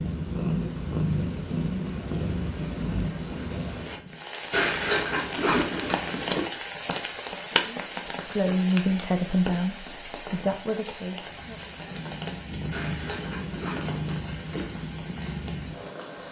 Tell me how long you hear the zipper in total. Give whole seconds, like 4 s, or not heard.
4 s.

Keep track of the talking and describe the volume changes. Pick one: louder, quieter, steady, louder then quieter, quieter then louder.
quieter.